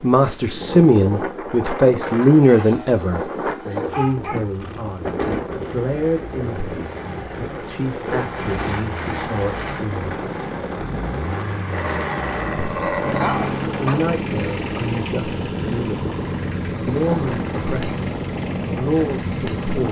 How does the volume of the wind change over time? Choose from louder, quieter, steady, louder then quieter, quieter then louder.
steady.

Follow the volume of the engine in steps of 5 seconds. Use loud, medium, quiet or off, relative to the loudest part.
quiet, medium, loud, loud.